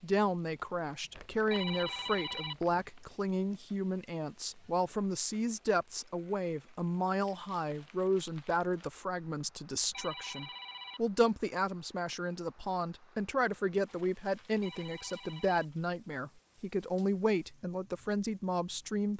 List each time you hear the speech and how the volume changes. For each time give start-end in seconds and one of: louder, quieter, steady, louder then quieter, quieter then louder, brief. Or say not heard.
0.0-19.1 steady.